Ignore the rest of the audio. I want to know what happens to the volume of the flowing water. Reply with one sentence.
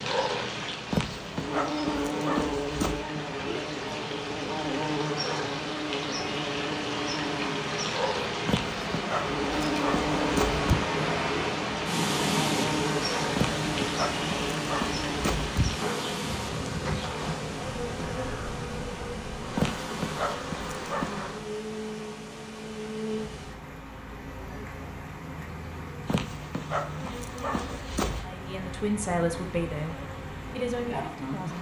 The volume of the flowing water goes up, then down.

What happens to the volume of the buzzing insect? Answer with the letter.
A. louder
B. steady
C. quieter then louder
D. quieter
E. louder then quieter
D.